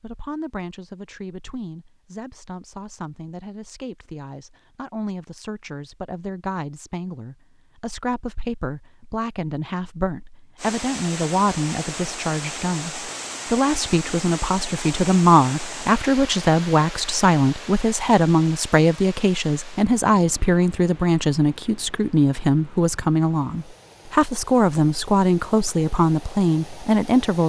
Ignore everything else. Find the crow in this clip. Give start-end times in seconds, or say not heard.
not heard.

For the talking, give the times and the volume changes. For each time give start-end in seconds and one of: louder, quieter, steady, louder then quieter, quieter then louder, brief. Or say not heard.
0.0-27.4 louder.